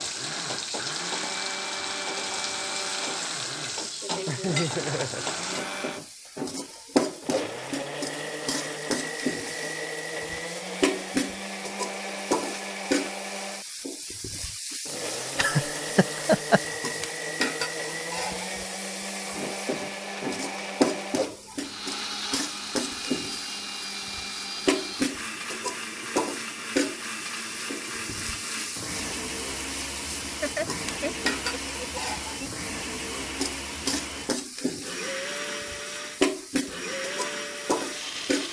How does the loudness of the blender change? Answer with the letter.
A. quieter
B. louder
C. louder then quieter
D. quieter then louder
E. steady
E.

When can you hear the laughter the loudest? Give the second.
16 s.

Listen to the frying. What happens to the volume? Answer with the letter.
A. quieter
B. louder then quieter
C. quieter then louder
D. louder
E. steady
E.